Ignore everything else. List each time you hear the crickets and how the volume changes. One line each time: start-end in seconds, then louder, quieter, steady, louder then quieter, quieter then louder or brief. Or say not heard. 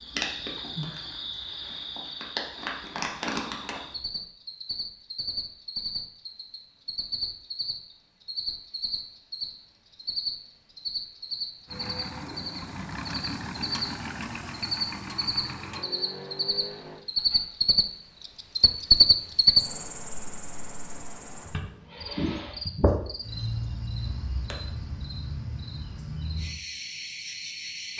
0.0-27.9 louder then quieter.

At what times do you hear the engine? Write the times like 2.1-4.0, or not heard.
11.7-17.1.